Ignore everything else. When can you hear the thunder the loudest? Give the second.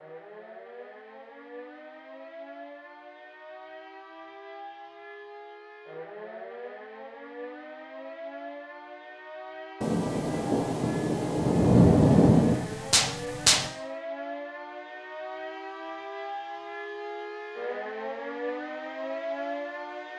12 s.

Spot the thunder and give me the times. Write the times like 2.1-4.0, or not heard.
9.8-13.7.